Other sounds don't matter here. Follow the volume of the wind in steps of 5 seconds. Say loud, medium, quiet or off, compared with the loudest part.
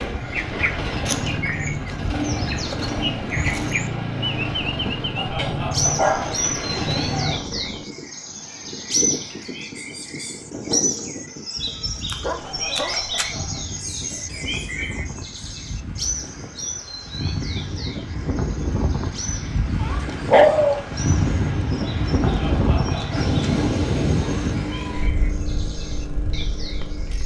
medium, medium, medium, medium, loud, quiet.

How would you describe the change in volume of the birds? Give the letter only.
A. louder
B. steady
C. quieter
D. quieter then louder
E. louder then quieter
C.